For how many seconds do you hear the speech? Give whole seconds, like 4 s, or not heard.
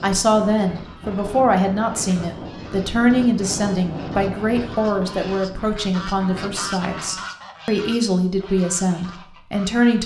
10 s.